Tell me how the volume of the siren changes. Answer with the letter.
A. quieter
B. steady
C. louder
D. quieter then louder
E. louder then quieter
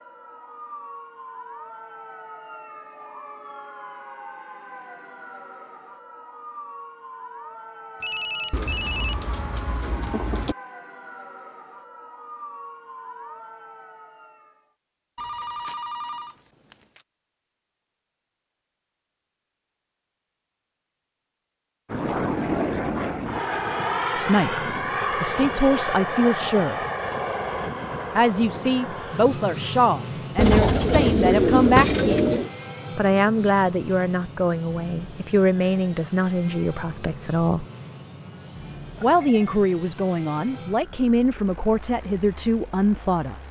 B.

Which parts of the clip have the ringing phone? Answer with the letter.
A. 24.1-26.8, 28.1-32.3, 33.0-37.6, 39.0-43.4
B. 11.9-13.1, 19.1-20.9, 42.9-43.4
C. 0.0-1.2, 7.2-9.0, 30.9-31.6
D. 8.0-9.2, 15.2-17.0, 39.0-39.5
D.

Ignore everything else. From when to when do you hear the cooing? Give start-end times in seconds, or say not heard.
8.5-10.6, 30.4-32.5.